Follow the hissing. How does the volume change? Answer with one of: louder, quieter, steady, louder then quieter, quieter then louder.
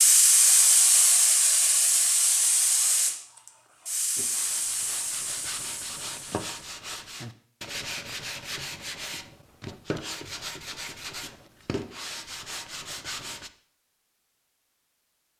quieter.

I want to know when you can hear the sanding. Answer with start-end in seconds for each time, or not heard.
4.2-13.5.